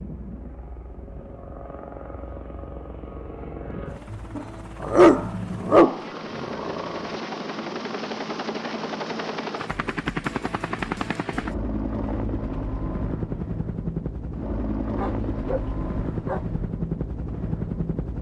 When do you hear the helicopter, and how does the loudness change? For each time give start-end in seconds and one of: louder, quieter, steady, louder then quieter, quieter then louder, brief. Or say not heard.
0.0-18.1 louder.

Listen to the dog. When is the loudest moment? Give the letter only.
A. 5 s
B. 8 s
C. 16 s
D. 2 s
A.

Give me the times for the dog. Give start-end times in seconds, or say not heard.
4.3-7.0, 14.9-16.6.